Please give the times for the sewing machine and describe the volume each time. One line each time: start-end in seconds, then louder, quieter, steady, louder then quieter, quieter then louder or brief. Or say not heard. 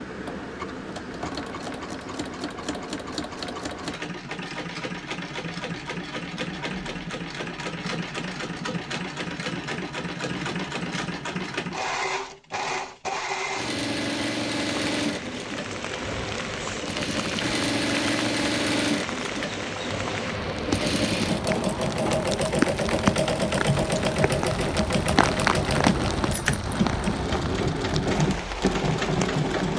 0.0-29.7 louder.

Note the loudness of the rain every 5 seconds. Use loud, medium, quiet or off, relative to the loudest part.
off, off, off, medium, loud, loud.